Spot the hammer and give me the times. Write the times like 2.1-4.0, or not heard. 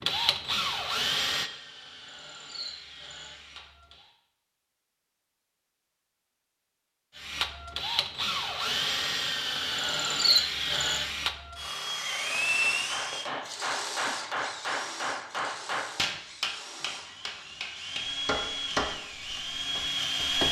12.6-20.4.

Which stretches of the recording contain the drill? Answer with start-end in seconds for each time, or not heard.
0.0-4.1, 7.2-20.4.